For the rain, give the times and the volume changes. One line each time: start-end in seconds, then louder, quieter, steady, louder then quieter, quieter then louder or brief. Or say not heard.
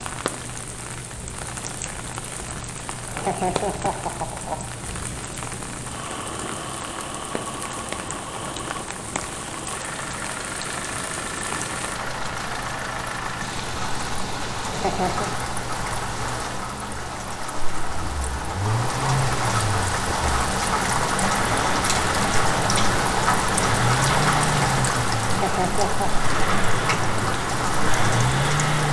0.0-28.8 louder.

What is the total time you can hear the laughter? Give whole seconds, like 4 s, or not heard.
3 s.